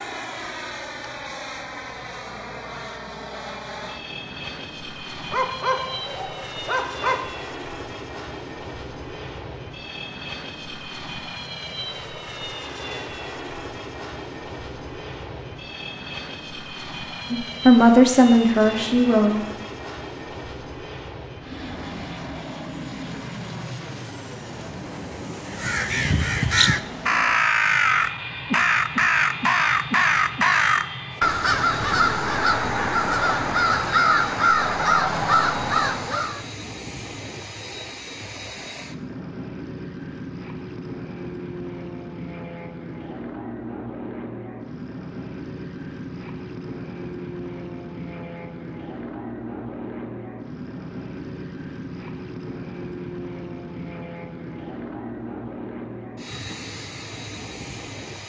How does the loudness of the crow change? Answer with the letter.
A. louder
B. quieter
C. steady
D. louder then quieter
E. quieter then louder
C.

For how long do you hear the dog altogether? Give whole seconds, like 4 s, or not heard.
2 s.